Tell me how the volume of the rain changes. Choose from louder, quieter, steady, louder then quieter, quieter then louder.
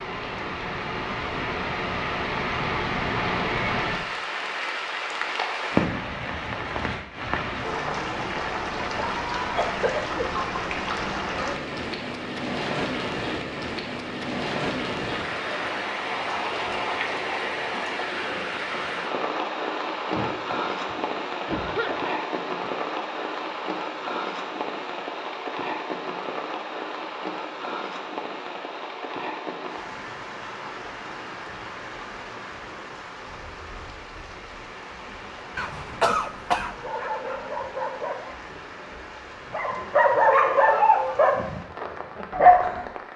quieter.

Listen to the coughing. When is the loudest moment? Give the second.
36 s.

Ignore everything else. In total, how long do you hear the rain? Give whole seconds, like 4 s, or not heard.
43 s.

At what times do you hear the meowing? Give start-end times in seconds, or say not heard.
not heard.